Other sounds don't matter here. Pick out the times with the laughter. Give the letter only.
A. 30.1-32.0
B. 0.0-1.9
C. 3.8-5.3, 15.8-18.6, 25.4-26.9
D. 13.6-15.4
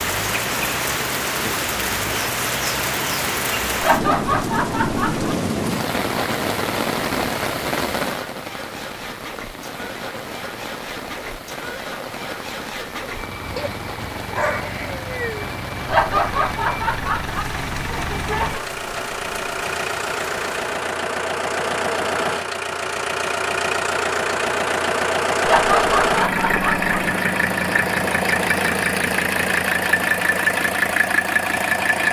C.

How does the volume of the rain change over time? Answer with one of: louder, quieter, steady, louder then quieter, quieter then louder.
quieter.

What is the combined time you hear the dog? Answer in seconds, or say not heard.
2 s.